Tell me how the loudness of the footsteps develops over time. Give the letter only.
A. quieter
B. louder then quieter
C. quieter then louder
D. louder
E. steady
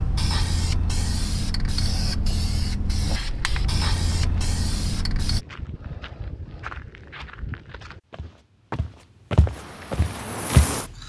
D.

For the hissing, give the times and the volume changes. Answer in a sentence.
You can hear the hissing from 0.0 to 5.5 s, at a steady volume; and briefly from 9.5 to 11.0 s.